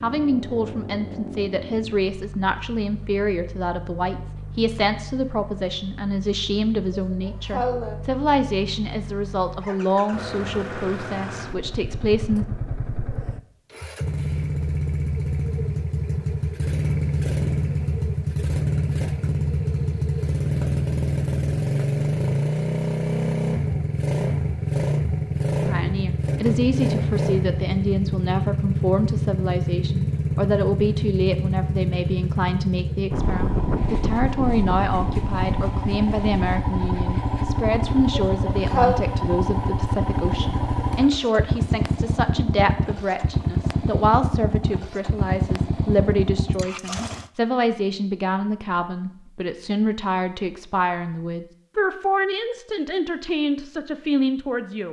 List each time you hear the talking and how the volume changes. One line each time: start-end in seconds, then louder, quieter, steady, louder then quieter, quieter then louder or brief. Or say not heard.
0.0-12.4 steady
25.6-54.8 steady.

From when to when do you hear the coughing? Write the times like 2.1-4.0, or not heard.
6.9-8.0, 38.3-39.0.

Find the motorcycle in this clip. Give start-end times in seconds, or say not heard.
0.0-47.3.